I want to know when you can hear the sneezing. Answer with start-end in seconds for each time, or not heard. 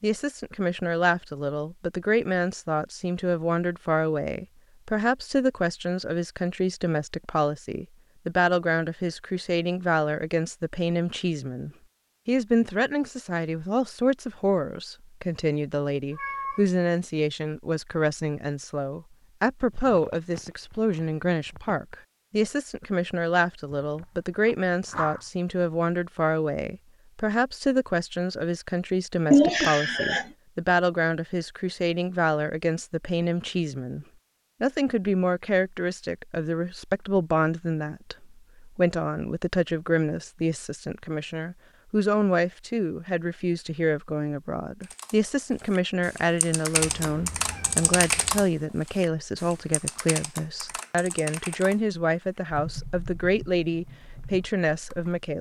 23.7-25.2, 29.3-30.2.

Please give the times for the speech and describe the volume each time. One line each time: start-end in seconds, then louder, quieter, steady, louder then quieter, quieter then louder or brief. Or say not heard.
0.0-55.3 steady.